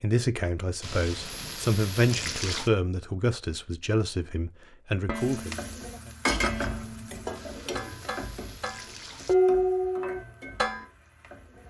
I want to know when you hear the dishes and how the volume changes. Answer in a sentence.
The dishes can be heard from 5.0 to 10.8 s, getting louder.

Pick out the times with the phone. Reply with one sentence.
The phone can't be heard in this clip.